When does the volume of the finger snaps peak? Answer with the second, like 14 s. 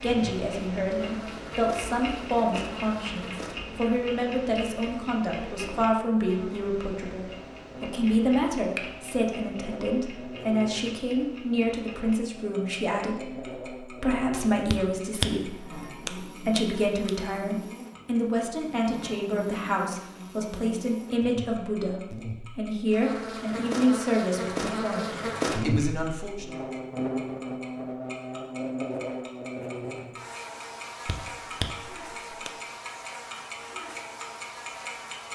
15 s.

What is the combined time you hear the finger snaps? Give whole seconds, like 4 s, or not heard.
4 s.